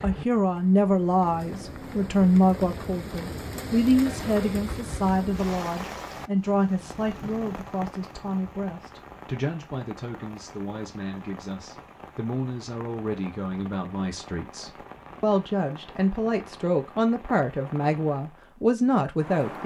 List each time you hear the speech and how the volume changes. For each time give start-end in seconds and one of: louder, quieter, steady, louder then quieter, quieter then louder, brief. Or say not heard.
0.0-19.6 quieter then louder.